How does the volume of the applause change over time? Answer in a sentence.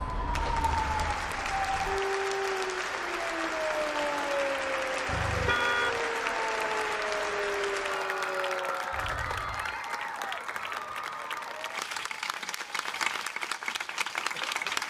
The loudness of the applause stays about the same.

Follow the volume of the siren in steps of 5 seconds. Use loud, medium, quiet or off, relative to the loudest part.
loud, loud, off.